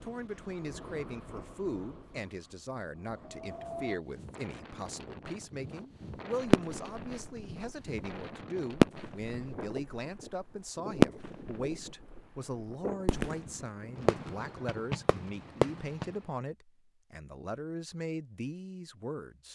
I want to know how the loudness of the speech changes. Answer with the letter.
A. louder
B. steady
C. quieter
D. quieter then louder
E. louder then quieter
B.